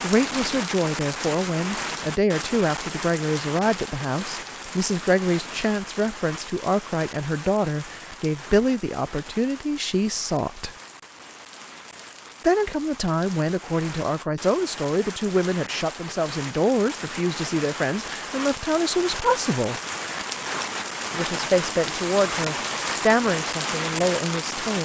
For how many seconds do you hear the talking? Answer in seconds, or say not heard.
22 s.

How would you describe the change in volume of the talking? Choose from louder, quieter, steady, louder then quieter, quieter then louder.
steady.